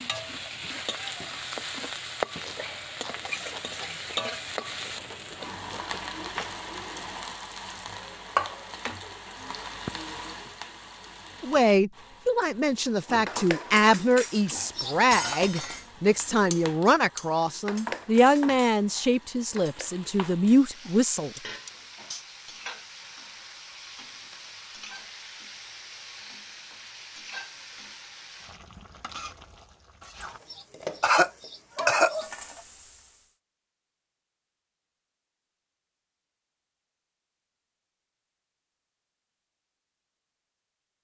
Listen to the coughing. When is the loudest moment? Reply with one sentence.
The loudest moment of the coughing is at 32 seconds.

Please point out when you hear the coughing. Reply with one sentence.
You can hear the coughing from 14.4 to 15.3 s and from 30.2 to 32.3 s.